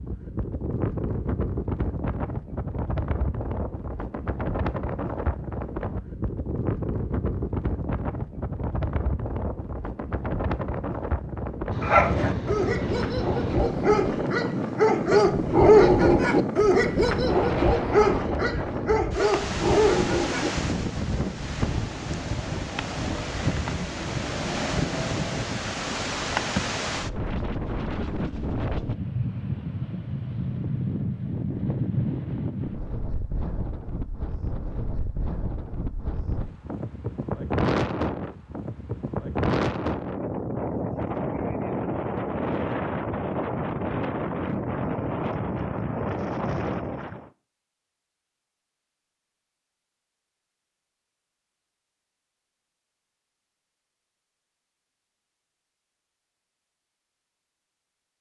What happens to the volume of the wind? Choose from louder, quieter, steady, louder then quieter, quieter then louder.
steady.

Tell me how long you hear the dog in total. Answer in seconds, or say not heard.
9 s.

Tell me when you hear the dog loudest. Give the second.
16 s.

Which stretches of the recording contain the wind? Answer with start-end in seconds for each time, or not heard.
0.0-47.3.